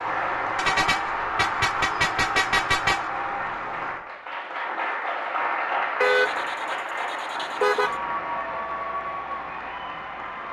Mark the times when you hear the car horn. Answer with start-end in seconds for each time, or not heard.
0.6-3.0, 6.0-8.0.